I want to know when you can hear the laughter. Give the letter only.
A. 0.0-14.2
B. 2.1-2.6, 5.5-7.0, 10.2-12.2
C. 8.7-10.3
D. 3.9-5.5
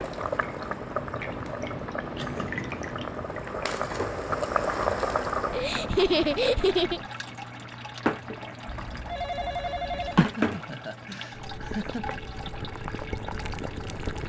B.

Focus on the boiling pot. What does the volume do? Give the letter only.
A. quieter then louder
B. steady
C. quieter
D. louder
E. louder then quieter
E.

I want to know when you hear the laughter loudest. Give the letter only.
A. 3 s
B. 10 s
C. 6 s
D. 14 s
C.